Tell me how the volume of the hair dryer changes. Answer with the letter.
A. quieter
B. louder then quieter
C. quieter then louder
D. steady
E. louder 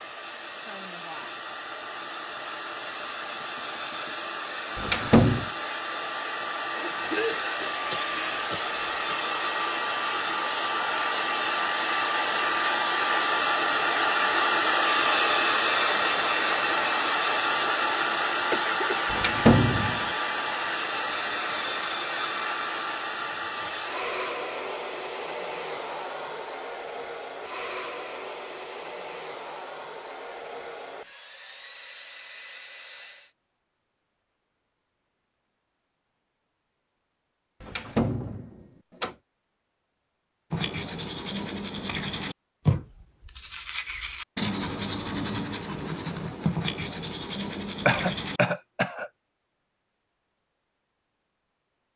B.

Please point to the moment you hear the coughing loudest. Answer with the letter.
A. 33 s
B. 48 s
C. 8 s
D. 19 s
B.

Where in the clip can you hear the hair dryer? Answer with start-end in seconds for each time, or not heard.
0.0-33.4.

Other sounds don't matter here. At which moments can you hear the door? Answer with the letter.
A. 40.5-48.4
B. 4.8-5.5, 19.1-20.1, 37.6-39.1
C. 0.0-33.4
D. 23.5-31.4
B.